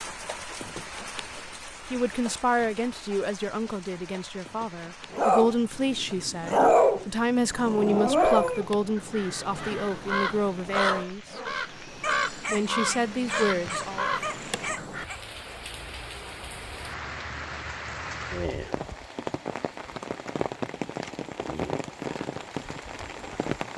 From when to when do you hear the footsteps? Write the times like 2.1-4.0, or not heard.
not heard.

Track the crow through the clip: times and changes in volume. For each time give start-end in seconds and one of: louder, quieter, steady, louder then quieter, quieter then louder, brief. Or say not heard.
8.1-15.1 louder.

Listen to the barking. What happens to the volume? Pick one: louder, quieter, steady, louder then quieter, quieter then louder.
quieter.